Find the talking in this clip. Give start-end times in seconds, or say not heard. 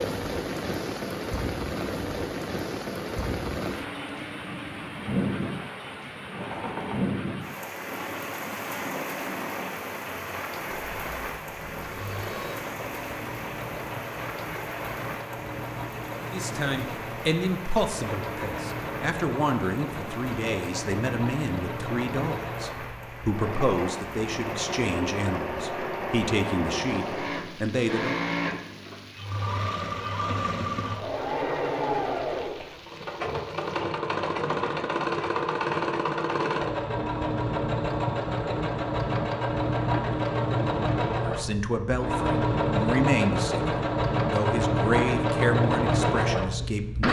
16.2-28.2, 41.1-47.0.